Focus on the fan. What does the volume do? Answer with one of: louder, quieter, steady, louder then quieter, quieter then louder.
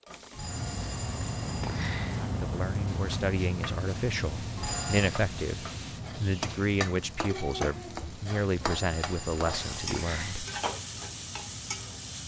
quieter.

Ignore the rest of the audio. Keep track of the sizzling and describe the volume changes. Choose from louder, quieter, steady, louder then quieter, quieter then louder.
louder.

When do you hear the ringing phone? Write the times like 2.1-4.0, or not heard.
0.3-2.3, 4.5-5.2, 8.6-10.4.